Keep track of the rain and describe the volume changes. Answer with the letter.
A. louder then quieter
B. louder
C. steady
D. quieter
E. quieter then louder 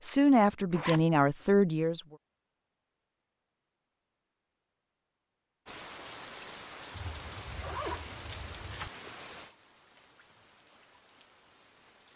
D.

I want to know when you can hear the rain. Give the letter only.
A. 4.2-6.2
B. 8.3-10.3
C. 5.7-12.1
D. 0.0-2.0
C.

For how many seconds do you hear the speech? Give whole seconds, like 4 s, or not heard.
2 s.